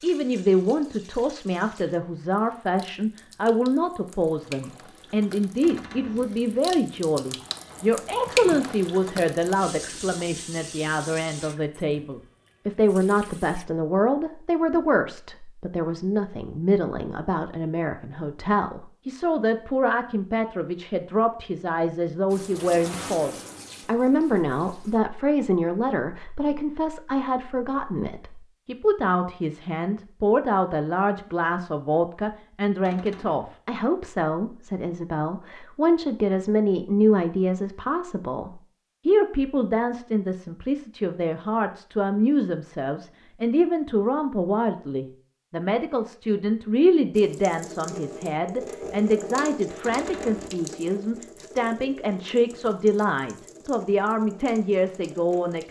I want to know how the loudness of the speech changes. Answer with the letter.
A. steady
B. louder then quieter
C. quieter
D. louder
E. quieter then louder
A.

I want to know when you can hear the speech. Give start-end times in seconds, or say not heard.
0.0-55.6.